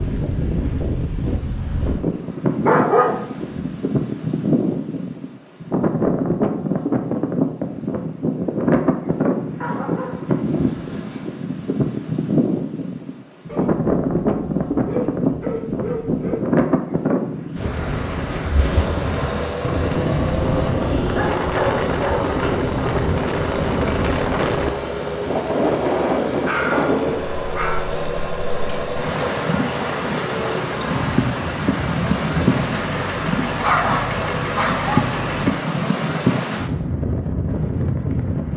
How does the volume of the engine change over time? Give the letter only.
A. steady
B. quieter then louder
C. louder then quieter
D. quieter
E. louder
A.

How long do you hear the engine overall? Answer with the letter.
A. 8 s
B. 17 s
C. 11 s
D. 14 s
B.